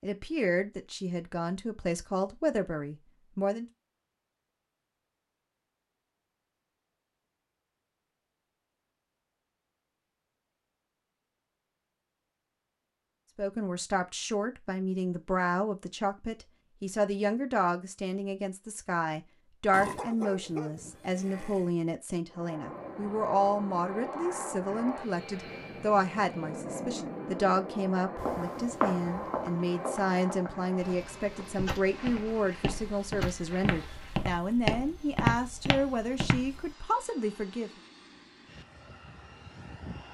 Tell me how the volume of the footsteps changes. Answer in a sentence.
The loudness of the footsteps goes down, then up.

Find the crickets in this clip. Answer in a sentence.
The crickets can't be heard in this clip.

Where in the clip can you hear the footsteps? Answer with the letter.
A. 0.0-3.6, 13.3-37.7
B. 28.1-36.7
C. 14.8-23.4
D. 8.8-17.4
B.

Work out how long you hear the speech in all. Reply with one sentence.
You can hear the speech for 28 seconds altogether.